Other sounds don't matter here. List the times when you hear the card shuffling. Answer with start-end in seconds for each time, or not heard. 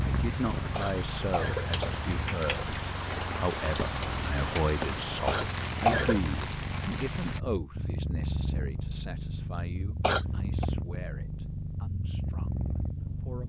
not heard.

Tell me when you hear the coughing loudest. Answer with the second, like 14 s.
6 s.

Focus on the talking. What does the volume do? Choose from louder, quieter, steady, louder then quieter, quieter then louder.
quieter.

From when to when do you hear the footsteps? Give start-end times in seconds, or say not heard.
not heard.